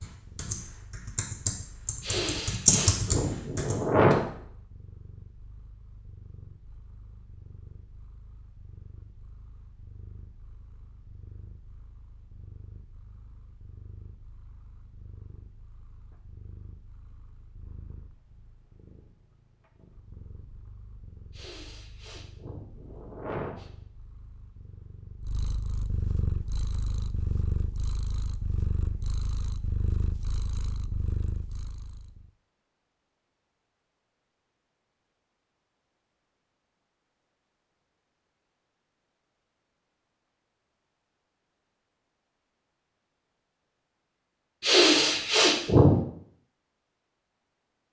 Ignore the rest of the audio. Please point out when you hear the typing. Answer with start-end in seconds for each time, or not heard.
0.0-4.2.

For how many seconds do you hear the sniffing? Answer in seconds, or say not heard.
6 s.